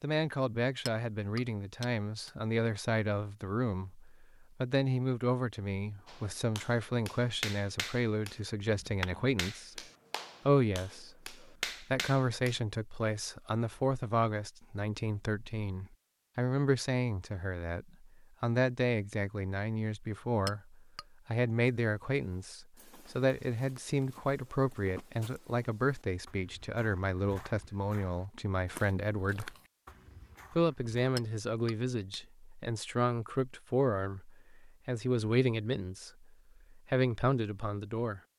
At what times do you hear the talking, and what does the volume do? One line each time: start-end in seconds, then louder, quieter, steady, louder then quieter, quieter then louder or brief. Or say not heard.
0.0-9.8 steady
10.4-29.5 steady
30.5-38.2 steady.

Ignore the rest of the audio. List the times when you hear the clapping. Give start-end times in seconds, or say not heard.
6.0-12.6.